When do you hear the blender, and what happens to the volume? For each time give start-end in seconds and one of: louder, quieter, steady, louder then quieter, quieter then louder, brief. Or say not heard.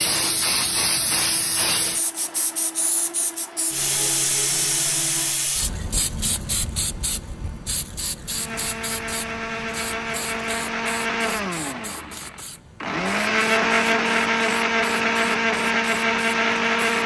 0.0-5.5 steady
8.2-17.0 louder.